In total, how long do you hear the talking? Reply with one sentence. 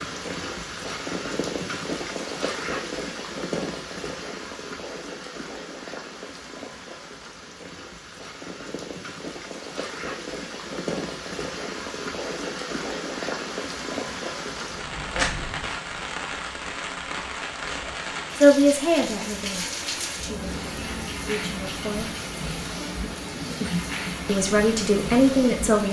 You can hear the talking for 5 seconds altogether.